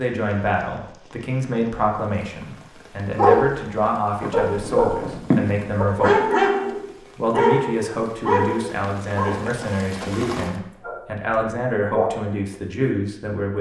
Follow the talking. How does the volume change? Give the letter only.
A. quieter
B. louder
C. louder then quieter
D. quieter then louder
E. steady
E.